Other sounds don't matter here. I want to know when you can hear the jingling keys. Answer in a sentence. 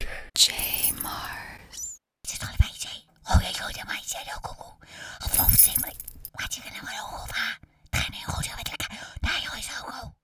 The jingling keys can be heard from 0.6 to 1.1 s and from 5.3 to 6.3 s.